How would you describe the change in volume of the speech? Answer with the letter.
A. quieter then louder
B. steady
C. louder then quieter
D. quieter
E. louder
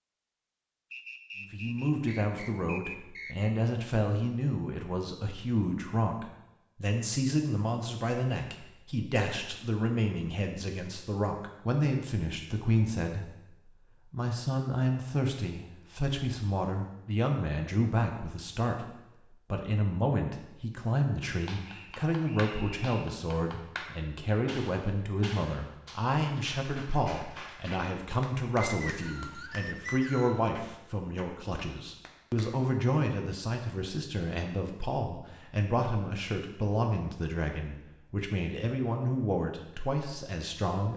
B.